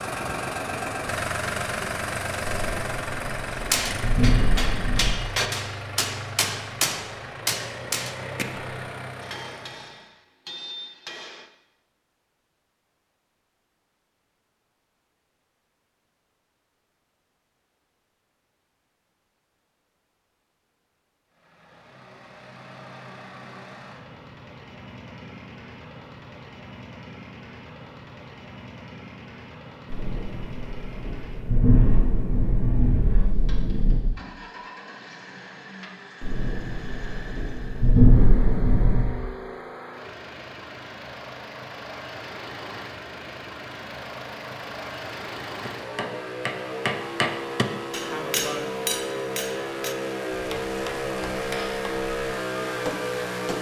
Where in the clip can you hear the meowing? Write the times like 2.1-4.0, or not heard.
not heard.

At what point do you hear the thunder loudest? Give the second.
38 s.